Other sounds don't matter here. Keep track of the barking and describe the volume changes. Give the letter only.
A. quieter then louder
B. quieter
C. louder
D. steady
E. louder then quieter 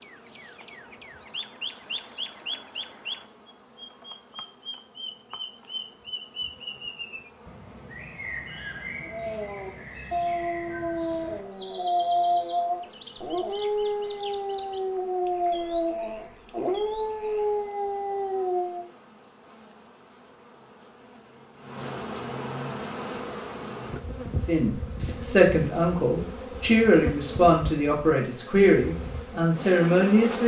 D.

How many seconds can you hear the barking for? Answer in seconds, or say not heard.
10 s.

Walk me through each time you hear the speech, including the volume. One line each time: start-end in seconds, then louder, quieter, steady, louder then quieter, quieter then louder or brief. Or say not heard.
24.4-30.4 steady.